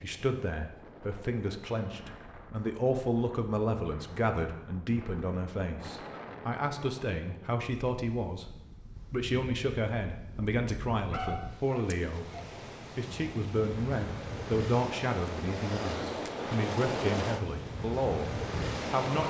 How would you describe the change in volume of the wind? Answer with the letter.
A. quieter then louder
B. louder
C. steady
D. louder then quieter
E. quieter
B.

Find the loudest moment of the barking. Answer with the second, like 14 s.
11 s.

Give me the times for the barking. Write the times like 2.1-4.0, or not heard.
10.9-12.5.